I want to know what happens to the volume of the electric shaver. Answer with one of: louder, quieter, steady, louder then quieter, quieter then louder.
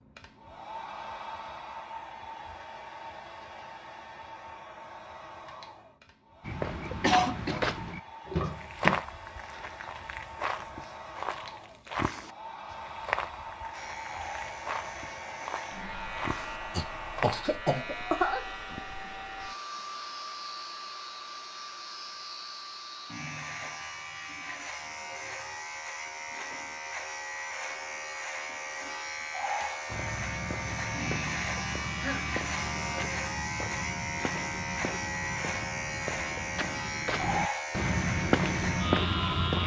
louder.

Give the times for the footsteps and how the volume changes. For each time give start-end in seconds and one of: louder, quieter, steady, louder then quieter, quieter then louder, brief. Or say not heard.
6.4-17.4 quieter
29.9-39.6 louder.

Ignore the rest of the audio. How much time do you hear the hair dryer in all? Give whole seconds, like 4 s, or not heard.
33 s.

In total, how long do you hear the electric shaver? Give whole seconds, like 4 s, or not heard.
26 s.